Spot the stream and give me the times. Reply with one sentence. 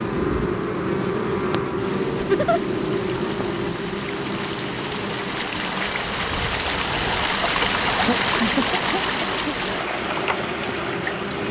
You can hear the stream from 1.8 to 11.4 s.